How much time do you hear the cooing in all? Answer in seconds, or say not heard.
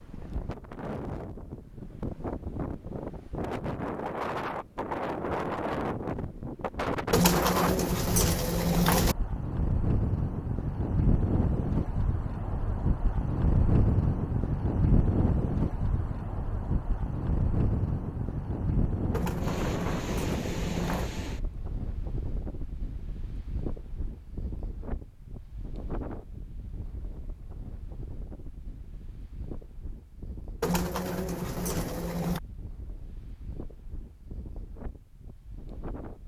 6 s.